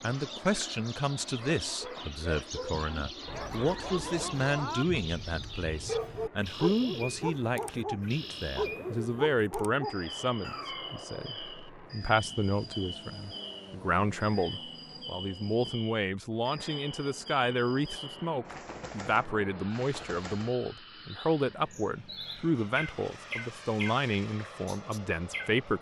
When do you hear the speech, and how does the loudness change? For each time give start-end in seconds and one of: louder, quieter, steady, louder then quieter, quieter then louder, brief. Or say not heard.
0.0-25.7 steady.